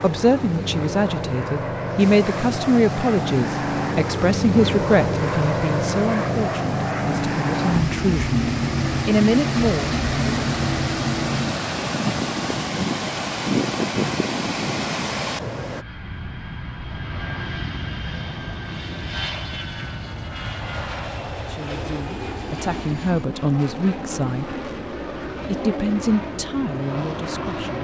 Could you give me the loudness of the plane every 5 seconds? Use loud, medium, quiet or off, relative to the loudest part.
loud, loud, loud, medium, medium, medium.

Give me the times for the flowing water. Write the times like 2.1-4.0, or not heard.
0.0-15.8.